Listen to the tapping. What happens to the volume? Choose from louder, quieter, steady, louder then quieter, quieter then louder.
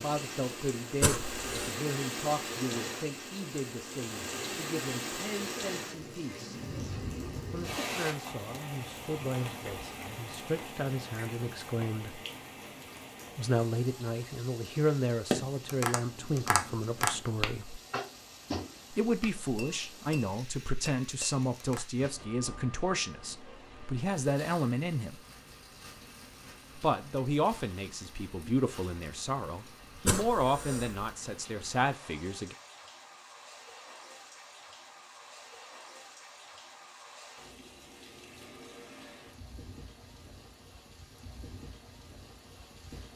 quieter.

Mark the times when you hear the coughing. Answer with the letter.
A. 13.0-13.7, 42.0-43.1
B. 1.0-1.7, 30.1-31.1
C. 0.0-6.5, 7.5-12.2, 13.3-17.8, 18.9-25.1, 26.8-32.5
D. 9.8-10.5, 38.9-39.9
B.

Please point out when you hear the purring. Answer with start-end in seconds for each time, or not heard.
not heard.